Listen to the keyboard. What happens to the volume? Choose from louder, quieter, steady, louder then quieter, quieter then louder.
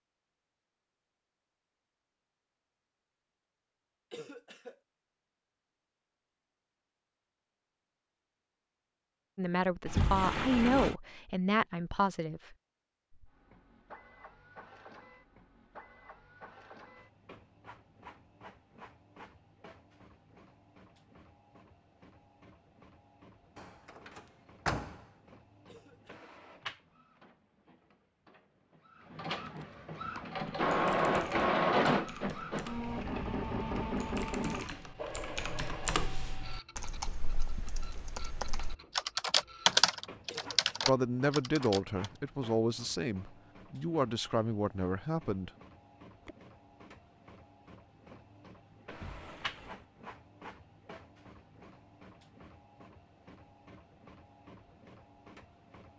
louder.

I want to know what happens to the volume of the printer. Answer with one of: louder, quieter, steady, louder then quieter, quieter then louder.
louder then quieter.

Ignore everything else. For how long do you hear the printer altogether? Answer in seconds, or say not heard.
43 s.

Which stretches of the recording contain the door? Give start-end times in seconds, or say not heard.
9.8-10.9, 23.6-24.9, 48.9-49.9.